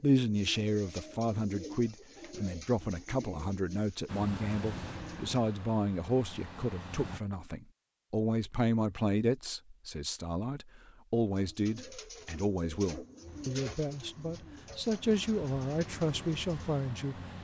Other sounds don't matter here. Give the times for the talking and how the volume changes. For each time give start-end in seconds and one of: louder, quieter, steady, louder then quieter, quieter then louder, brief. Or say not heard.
0.0-17.2 steady.